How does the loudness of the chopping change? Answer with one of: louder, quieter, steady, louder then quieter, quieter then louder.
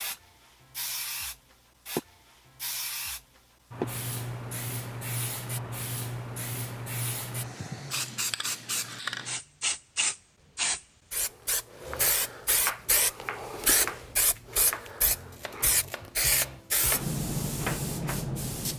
quieter then louder.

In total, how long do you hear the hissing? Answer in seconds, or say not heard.
19 s.